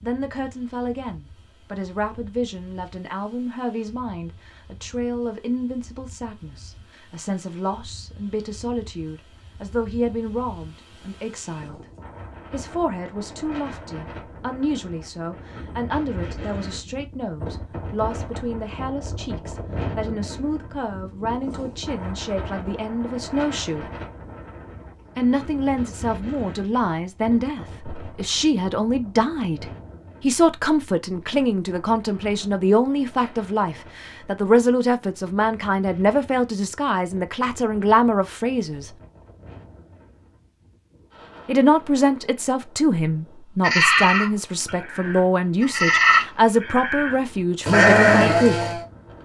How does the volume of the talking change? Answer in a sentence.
The volume of the talking goes up.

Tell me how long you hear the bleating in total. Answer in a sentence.
You can hear the bleating for 5 seconds altogether.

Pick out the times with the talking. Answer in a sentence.
You can hear the talking from 0.0 to 11.8 s, from 12.5 to 23.9 s, from 25.1 to 38.9 s and from 41.5 to 48.7 s.